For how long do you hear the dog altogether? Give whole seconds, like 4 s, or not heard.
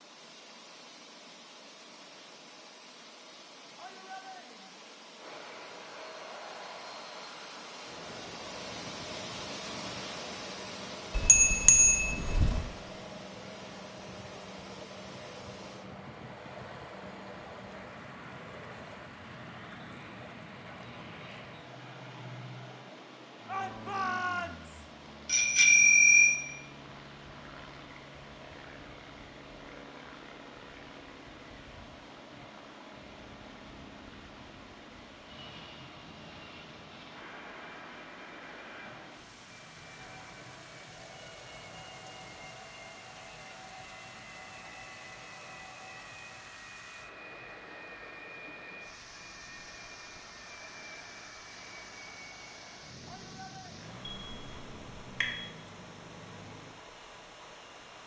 not heard.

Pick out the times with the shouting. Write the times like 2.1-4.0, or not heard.
3.8-4.8, 23.4-24.9, 53.0-53.8.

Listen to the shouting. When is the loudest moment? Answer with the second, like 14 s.
24 s.